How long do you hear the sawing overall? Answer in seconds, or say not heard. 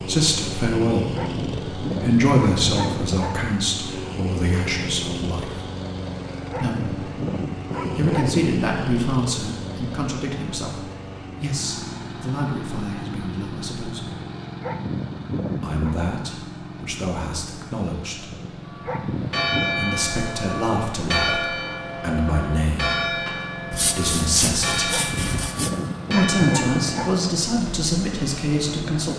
2 s.